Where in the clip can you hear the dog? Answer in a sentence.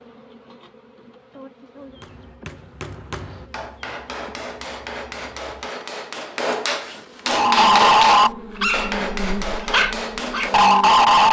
You can hear the dog from 7.2 to 11.2 s.